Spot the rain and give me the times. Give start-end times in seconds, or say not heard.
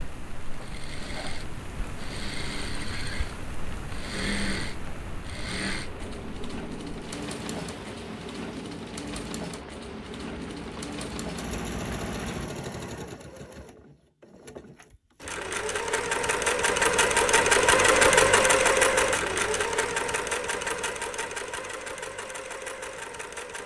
0.0-12.5.